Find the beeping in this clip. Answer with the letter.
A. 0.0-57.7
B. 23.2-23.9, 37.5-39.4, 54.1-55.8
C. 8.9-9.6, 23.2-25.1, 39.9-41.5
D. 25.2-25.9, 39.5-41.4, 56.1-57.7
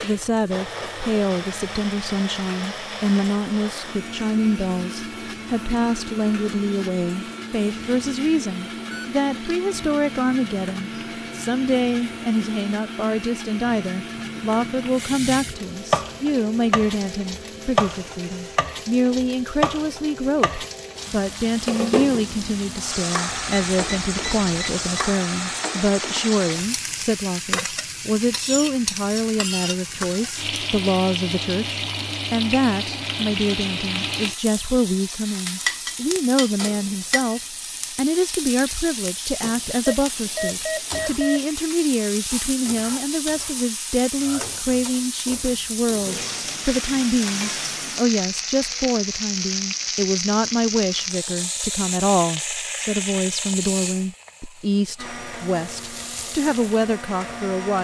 C.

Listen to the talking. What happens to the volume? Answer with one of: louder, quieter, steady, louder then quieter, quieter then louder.
steady.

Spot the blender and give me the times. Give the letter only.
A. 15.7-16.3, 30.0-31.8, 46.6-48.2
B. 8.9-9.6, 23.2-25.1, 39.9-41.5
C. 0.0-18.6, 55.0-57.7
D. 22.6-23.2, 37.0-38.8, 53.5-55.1
C.